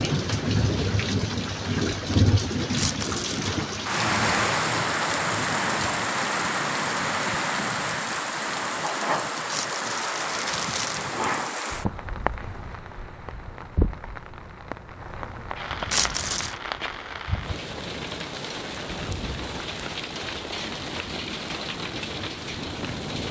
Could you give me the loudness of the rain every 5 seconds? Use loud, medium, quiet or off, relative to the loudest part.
loud, loud, medium, medium, medium.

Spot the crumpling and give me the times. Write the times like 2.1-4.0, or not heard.
2.8-3.6, 9.5-11.1, 15.9-16.6.